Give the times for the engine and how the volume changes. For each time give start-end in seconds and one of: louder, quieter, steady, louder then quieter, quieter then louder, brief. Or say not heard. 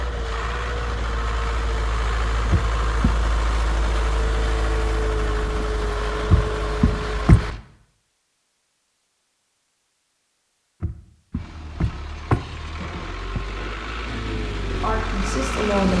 0.0-7.6 steady
11.3-15.9 louder.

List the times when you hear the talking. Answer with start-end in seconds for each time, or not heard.
14.7-15.9.